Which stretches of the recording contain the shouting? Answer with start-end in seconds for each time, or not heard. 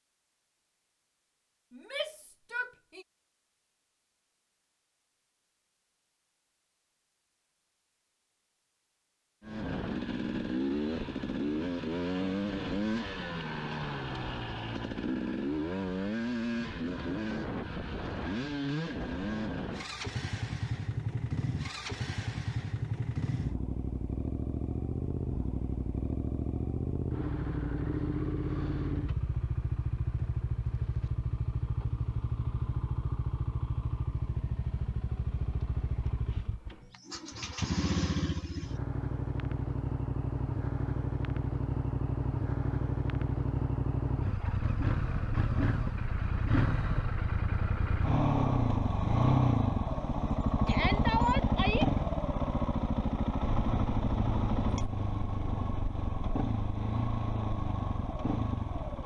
1.7-3.0, 50.6-51.9.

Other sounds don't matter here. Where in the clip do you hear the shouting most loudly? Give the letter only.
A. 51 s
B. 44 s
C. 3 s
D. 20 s
A.